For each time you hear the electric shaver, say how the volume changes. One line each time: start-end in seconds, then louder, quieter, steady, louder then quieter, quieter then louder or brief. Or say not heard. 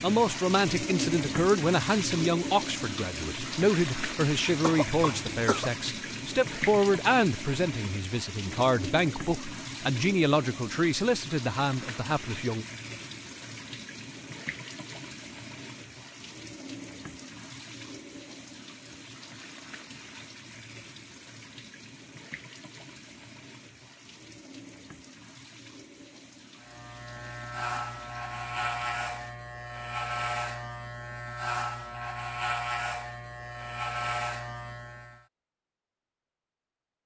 26.6-35.2 steady.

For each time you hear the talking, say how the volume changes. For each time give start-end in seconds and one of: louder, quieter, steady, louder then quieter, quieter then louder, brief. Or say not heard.
0.0-12.7 steady.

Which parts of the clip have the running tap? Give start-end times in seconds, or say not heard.
0.0-29.4.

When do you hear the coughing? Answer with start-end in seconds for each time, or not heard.
4.6-5.7.